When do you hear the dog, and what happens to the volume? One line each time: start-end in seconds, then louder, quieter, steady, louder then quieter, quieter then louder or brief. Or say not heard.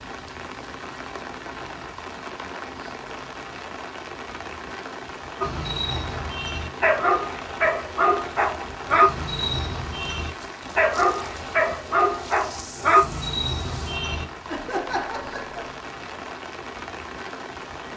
5.4-14.2 steady.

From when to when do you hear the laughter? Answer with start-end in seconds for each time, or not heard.
14.4-15.6.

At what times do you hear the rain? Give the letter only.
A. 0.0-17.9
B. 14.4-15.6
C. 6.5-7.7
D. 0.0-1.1
A.